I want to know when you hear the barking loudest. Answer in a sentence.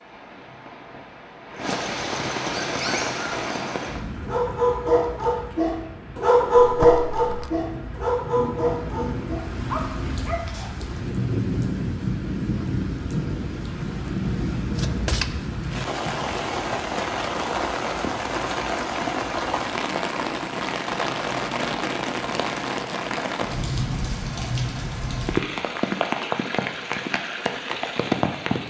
The loudest moment of the barking is at 7 seconds.